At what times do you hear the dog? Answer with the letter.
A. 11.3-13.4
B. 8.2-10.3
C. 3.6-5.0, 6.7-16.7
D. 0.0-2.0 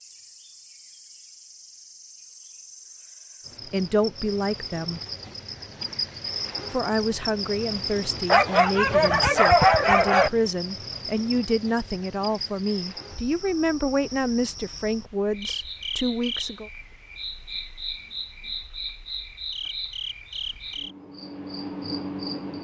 B.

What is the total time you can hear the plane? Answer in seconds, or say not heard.
not heard.